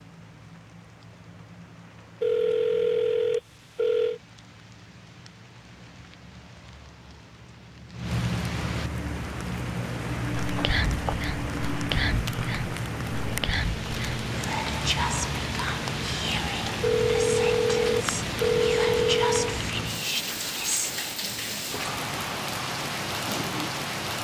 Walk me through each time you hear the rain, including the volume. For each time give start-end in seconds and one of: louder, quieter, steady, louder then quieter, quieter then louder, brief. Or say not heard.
0.0-24.1 louder.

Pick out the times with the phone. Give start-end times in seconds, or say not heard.
2.2-4.2, 16.8-19.6.